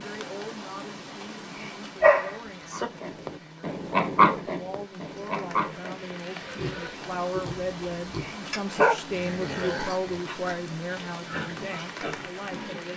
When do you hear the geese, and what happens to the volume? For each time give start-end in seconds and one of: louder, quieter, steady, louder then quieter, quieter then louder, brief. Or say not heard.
not heard.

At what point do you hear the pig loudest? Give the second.
4 s.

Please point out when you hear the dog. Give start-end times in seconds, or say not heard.
2.0-2.9, 8.8-10.3.